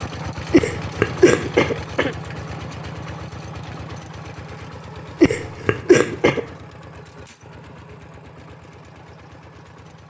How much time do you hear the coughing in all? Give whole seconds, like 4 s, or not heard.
3 s.